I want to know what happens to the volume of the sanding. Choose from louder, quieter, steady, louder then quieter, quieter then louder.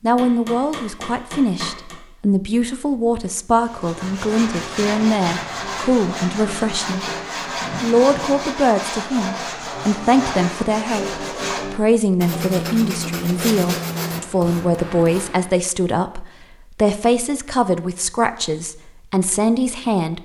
steady.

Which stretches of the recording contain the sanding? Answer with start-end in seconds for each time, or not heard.
3.6-15.3.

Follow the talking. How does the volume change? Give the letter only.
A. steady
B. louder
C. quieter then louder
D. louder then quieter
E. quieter
A.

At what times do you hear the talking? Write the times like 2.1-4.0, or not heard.
0.0-7.0, 7.8-20.2.